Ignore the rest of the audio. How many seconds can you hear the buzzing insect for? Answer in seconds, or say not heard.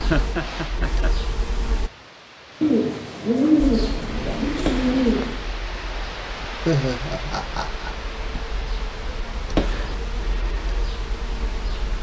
10 s.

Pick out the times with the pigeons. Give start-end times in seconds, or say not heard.
2.6-5.5.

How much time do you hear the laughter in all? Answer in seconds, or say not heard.
3 s.